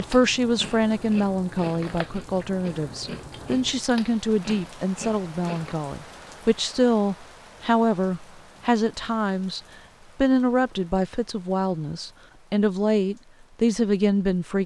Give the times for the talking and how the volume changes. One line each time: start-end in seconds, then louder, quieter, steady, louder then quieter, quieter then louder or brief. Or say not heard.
0.0-14.6 steady.